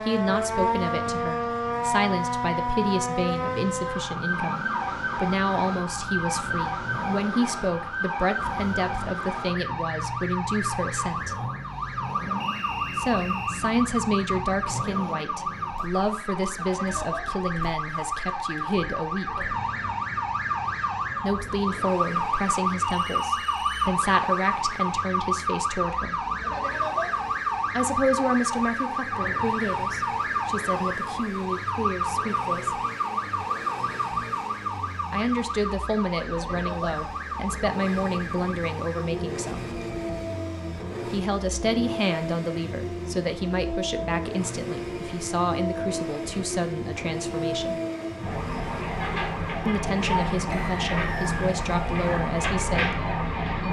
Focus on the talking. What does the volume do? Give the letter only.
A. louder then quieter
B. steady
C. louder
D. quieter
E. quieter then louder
B.